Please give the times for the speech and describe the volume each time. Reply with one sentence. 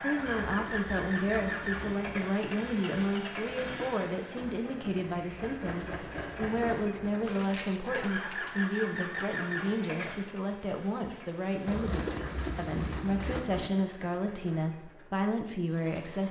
The speech can be heard from 0.0 to 16.2 s, at a steady volume.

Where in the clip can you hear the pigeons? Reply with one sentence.
The pigeons can be heard from 0.1 to 2.2 s and from 11.7 to 13.7 s.